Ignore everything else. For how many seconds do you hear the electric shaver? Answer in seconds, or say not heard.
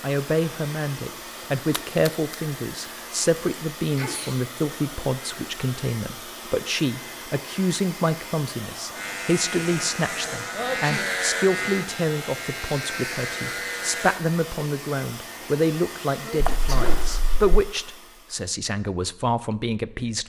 5 s.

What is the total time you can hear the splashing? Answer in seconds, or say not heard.
2 s.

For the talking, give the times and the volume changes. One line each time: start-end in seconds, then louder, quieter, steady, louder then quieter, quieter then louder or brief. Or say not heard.
0.0-20.2 steady.